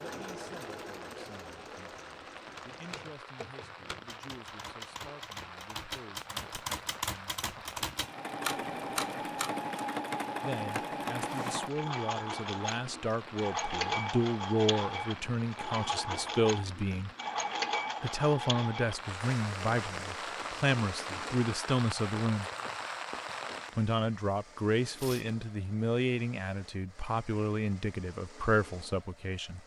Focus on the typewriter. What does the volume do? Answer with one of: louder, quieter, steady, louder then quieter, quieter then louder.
louder.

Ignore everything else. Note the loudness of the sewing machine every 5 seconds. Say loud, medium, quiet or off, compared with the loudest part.
medium, loud, loud, loud, quiet, quiet.